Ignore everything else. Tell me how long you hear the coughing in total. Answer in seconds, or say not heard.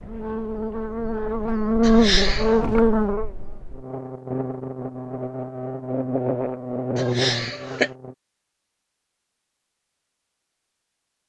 2 s.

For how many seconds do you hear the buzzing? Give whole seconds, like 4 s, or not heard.
8 s.